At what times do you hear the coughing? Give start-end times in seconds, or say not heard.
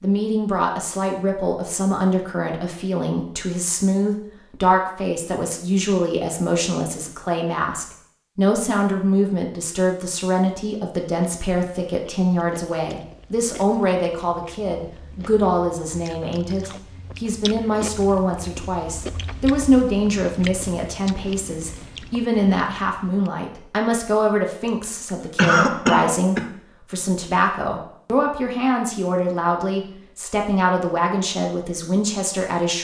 25.4-26.5.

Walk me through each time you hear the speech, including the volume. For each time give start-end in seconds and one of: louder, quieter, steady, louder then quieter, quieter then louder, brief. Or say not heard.
0.0-32.8 steady.